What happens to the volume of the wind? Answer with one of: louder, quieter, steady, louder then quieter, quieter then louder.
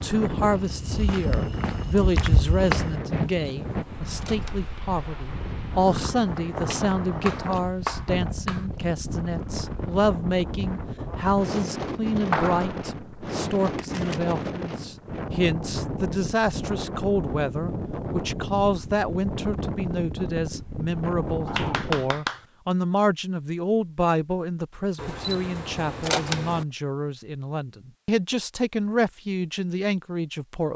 steady.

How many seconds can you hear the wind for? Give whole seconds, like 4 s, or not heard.
22 s.